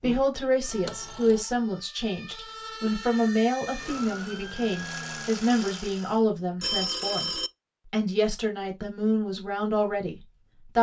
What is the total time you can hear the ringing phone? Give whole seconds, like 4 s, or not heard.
3 s.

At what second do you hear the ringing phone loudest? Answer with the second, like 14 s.
7 s.